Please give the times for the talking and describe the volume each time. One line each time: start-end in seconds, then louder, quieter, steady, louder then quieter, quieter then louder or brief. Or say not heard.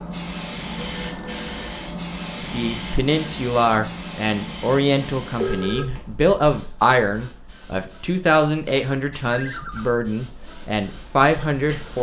2.5-11.9 steady.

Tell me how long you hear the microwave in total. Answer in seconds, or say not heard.
not heard.